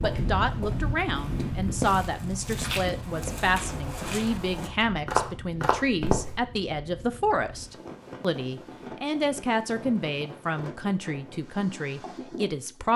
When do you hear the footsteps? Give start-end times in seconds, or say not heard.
0.0-6.4.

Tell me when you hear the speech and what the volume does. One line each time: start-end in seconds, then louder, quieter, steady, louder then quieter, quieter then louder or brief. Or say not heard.
0.0-12.9 steady.